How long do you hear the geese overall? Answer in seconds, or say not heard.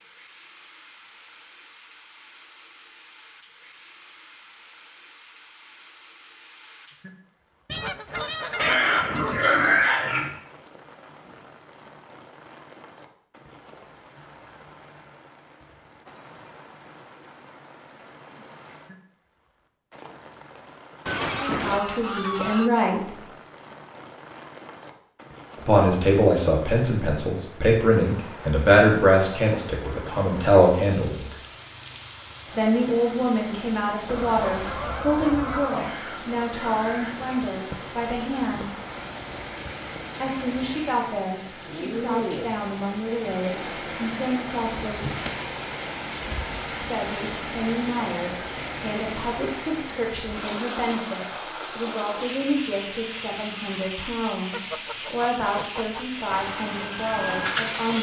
7 s.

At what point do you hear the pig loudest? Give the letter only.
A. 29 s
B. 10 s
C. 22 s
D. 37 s
B.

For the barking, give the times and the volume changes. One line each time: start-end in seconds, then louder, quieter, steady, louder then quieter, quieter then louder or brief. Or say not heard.
not heard.